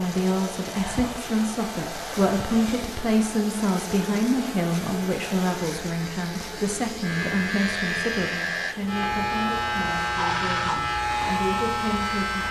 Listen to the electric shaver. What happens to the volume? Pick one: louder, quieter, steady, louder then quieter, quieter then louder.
louder.